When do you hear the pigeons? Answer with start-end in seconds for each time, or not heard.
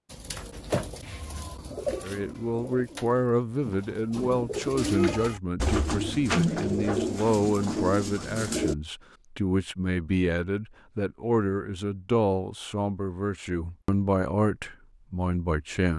0.1-8.8.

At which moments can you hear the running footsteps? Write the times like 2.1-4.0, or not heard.
not heard.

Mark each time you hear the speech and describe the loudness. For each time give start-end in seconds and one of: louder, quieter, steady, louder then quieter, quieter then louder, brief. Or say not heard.
2.0-15.9 steady.